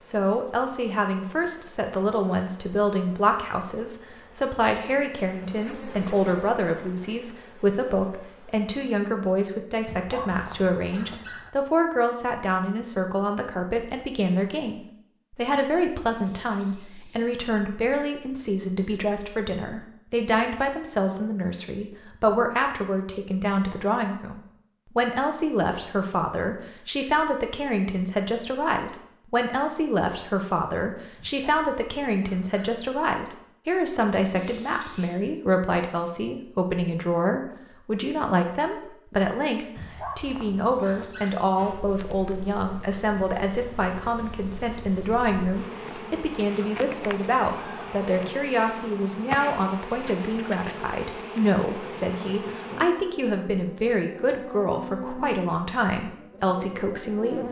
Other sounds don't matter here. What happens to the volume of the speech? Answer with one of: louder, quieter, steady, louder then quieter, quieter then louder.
steady.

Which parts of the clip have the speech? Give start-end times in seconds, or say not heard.
0.0-57.4.